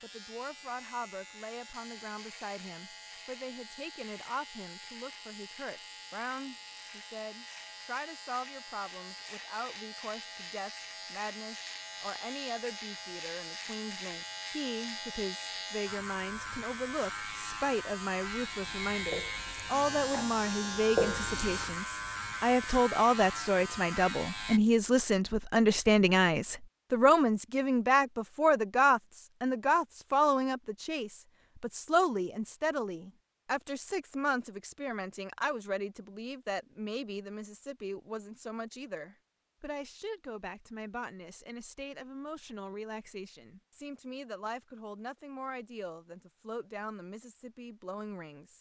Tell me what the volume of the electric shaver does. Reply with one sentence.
The loudness of the electric shaver goes up.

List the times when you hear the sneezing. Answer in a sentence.
You can't hear the sneezing here.